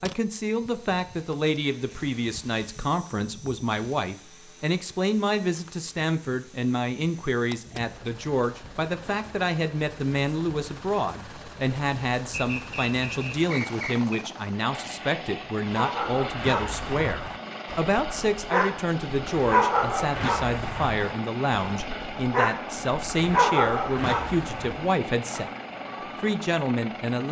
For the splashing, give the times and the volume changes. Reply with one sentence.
The splashing can't be heard in this clip.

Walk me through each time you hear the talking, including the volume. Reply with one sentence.
You can hear the talking from 0.0 to 25.5 s, at a steady volume; and briefly from 26.2 to 27.2 s.